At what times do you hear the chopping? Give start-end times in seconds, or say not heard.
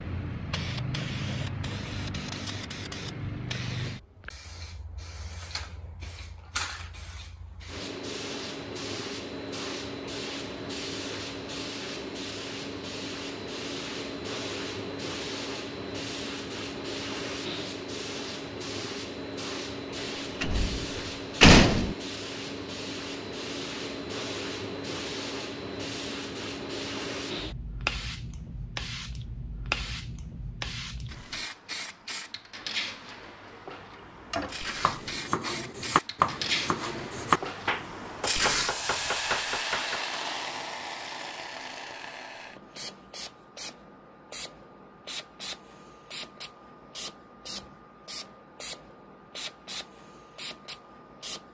33.8-40.2.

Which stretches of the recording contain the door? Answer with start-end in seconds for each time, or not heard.
20.4-21.9.